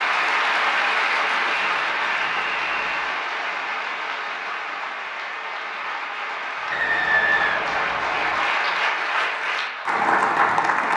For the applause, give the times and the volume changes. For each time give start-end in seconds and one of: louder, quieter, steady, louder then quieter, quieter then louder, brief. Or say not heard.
0.0-10.9 quieter then louder.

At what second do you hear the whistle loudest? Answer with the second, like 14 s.
7 s.